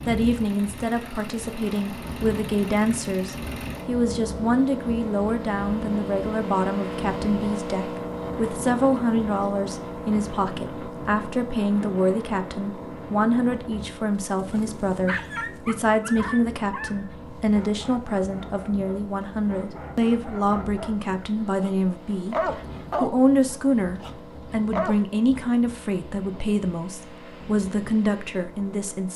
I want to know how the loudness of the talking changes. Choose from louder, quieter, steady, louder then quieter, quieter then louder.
steady.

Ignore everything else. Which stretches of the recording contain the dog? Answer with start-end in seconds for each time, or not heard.
14.3-21.7, 22.3-25.1.